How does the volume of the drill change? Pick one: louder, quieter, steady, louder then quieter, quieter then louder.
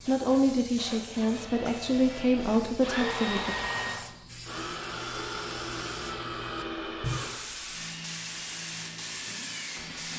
louder then quieter.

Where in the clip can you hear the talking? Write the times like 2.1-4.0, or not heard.
0.1-3.5.